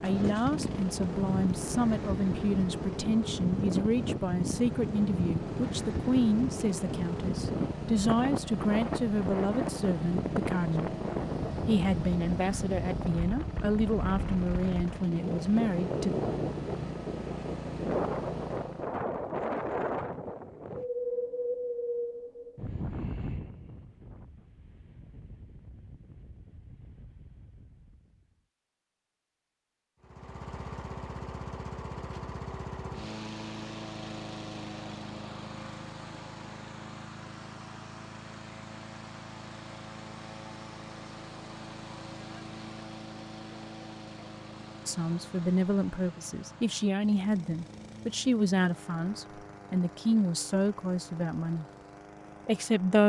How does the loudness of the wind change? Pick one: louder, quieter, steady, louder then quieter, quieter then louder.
quieter.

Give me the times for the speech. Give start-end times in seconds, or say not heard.
0.0-10.9, 11.7-16.1, 44.9-51.6, 52.5-53.0.